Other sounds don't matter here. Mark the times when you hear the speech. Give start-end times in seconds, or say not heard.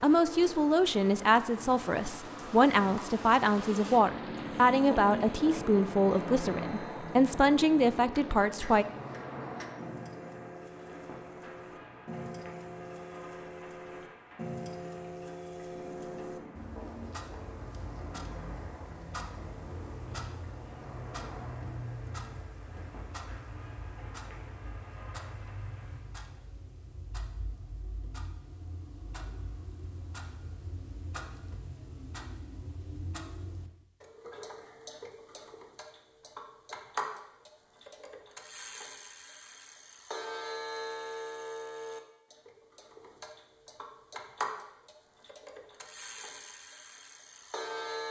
0.0-8.8.